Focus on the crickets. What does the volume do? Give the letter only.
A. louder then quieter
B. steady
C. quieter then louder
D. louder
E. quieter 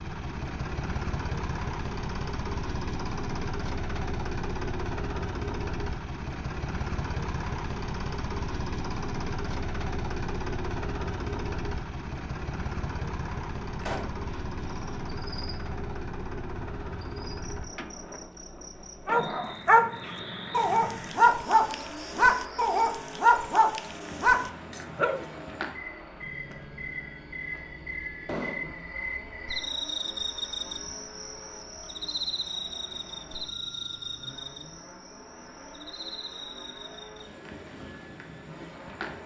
A.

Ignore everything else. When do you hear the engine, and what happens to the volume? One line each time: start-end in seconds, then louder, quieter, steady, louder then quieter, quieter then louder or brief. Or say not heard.
0.0-39.2 quieter.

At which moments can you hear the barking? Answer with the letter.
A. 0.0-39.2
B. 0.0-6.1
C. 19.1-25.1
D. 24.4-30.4
C.